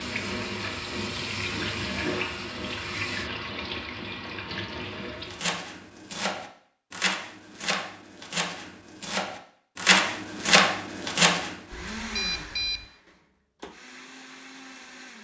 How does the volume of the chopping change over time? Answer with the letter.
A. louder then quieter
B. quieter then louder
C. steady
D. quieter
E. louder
E.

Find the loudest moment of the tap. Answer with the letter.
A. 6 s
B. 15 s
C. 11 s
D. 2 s
D.